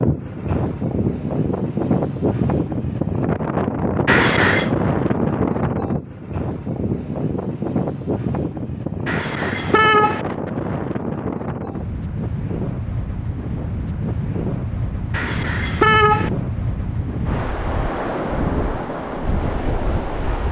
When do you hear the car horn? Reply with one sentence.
You can hear the car horn from 4.0 to 4.7 s, from 9.1 to 10.2 s and from 15.1 to 16.3 s.